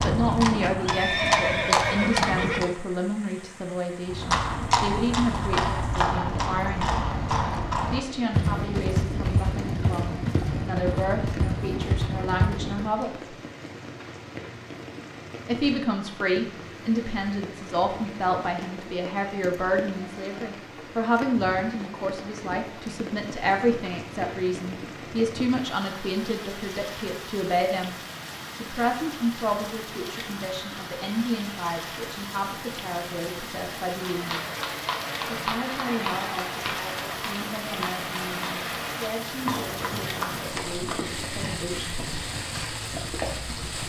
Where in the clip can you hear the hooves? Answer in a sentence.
The hooves can be heard from 0.0 to 2.8 s, from 4.0 to 12.9 s and from 34.0 to 43.8 s.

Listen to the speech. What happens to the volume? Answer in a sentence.
The volume of the speech goes down.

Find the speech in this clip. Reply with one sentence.
The speech can be heard from 0.0 to 7.0 s, from 7.9 to 13.3 s, from 15.4 to 27.9 s, from 28.6 to 34.4 s and from 35.2 to 42.0 s.